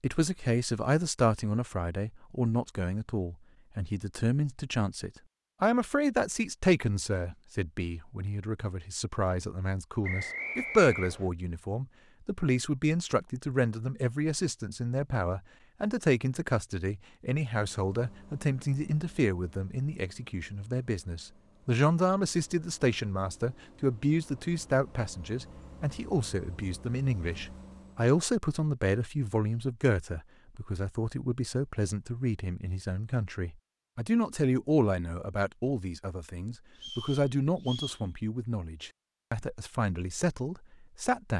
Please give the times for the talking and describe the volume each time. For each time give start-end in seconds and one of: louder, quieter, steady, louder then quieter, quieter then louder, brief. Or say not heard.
0.0-41.3 steady.